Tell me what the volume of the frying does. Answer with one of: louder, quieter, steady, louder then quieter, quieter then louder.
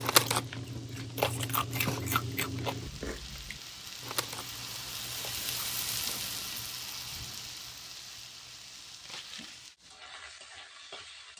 louder then quieter.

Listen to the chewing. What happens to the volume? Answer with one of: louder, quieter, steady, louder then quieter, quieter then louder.
quieter.